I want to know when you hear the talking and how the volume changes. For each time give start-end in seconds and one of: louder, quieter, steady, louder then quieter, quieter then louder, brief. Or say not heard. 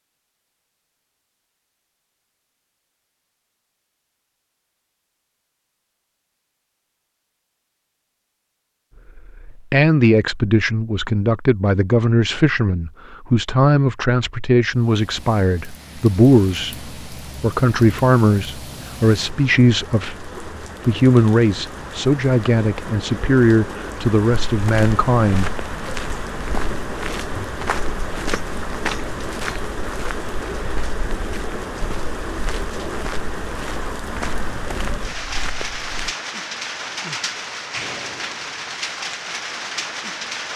9.2-25.6 steady.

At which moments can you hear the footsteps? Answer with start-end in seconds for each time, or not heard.
24.4-36.1.